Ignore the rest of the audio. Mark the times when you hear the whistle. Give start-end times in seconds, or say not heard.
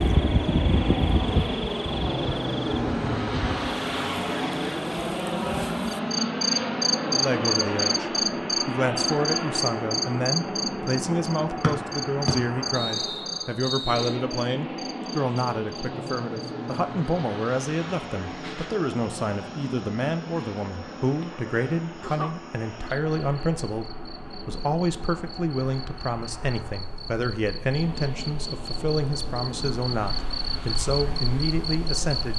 11.6-14.2.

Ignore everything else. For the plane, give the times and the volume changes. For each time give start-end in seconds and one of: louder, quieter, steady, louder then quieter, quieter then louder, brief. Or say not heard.
0.0-32.3 quieter.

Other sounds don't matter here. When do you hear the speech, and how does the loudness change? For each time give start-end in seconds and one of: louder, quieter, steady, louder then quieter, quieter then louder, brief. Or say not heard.
7.0-32.3 steady.